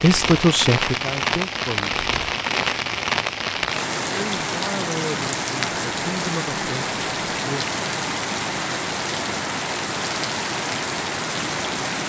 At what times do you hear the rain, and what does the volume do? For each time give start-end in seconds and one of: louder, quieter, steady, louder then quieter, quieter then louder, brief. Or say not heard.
0.0-12.0 steady.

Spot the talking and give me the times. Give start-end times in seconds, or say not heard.
0.0-1.9, 4.1-7.8.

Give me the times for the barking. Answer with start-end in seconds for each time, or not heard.
not heard.